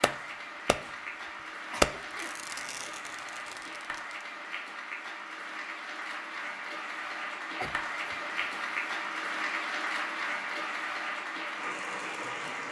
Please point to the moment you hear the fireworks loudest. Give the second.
2 s.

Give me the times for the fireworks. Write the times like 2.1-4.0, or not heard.
0.0-0.8, 1.8-4.0.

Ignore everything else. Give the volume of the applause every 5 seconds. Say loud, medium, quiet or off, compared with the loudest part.
medium, loud, loud.